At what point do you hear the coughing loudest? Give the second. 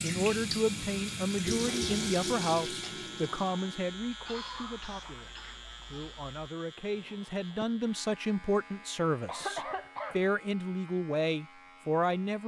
10 s.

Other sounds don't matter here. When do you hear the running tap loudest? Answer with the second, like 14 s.
2 s.